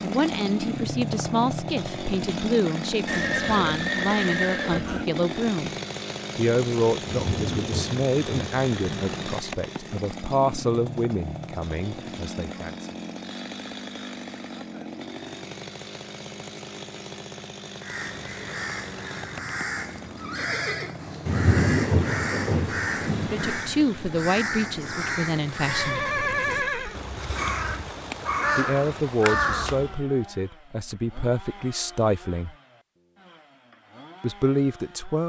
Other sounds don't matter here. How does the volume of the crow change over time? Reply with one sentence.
The loudness of the crow goes up.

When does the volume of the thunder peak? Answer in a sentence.
The loudest moment of the thunder is at 22 seconds.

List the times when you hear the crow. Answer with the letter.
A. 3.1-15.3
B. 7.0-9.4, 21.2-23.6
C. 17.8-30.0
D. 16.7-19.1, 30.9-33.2
C.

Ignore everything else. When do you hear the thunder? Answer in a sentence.
The thunder can be heard from 7.0 to 9.4 s and from 21.2 to 23.6 s.